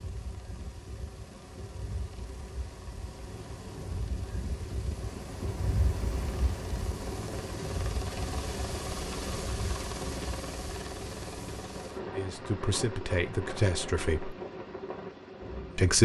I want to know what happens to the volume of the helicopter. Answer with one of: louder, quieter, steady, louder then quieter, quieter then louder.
louder then quieter.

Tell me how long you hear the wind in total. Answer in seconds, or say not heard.
16 s.